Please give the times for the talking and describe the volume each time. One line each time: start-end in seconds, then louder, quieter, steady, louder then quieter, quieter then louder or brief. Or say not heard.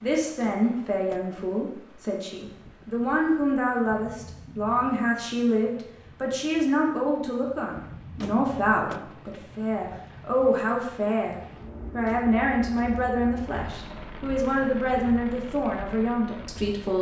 0.0-16.9 steady.